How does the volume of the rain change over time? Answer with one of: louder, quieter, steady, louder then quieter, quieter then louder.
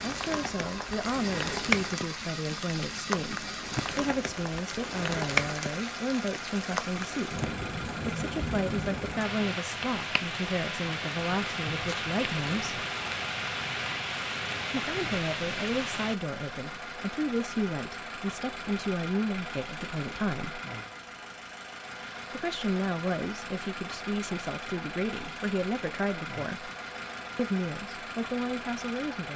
steady.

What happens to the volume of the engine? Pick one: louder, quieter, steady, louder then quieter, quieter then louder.
steady.